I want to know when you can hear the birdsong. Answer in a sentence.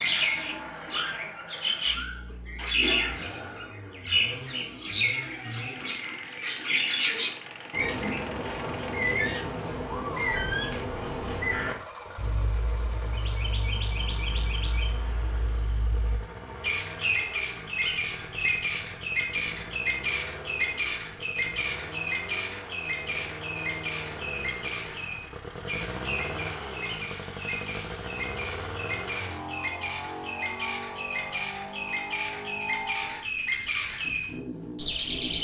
You can hear the birdsong from 0.0 to 35.3 s.